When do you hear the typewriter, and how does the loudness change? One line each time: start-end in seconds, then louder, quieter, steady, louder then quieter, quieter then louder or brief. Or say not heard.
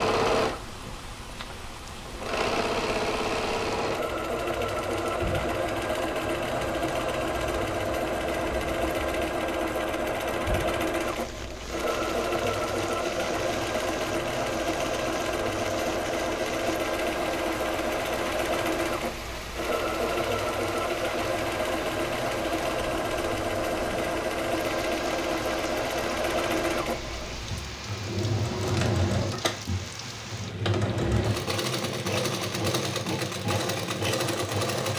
not heard.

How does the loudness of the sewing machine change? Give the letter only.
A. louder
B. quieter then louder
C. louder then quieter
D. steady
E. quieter
D.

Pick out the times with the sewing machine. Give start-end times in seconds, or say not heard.
0.0-34.9.